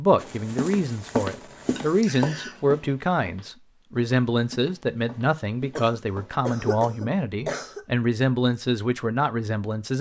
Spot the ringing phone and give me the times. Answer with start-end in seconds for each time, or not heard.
not heard.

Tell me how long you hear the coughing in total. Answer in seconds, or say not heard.
3 s.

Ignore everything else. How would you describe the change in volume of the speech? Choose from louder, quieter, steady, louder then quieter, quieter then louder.
steady.